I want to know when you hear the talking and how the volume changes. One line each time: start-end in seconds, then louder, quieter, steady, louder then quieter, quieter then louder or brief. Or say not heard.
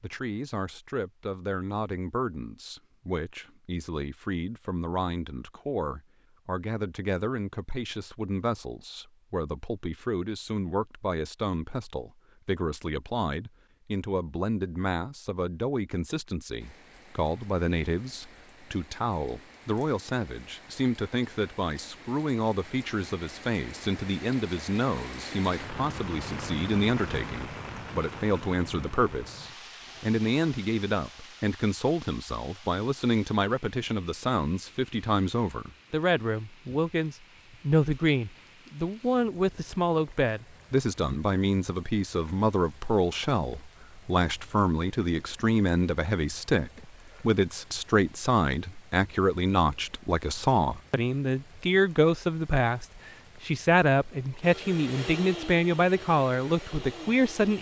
0.0-57.5 louder.